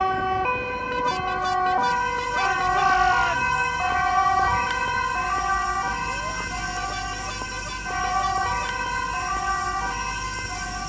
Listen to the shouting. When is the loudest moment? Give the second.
3 s.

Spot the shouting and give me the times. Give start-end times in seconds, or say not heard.
2.4-3.5, 6.1-6.5.